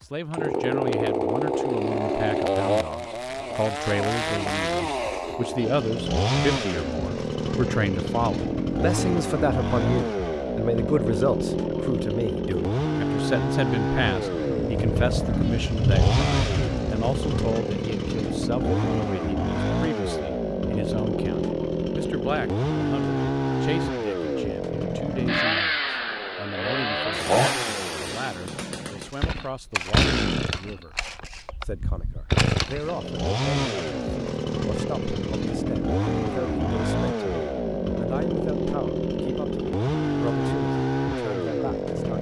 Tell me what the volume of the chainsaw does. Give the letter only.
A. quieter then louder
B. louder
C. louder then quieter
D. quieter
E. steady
E.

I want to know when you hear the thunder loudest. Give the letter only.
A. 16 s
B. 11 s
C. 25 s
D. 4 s
A.